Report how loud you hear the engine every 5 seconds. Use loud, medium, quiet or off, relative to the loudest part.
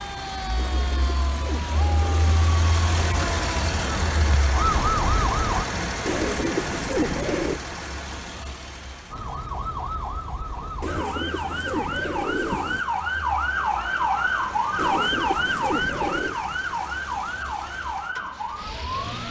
loud, loud, quiet, medium.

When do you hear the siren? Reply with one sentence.
The siren can be heard from 0.0 to 5.7 s and from 9.1 to 19.2 s.